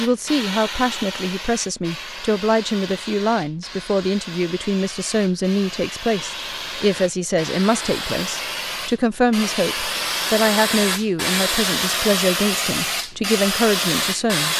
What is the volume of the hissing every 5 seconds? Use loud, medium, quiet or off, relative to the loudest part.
medium, medium, loud.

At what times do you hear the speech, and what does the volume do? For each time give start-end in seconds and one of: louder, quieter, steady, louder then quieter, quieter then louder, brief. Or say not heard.
0.0-14.5 steady.